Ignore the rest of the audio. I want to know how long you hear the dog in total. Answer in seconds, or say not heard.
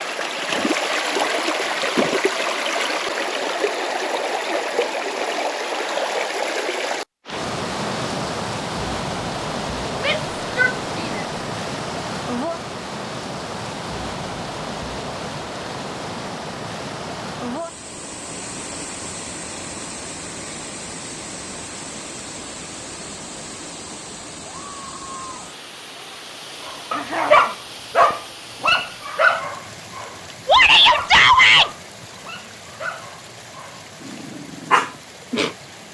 9 s.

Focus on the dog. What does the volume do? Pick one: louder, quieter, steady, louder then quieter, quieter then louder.
quieter then louder.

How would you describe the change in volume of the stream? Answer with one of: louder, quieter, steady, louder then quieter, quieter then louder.
quieter.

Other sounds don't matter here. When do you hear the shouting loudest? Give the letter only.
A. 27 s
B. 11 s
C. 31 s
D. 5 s
C.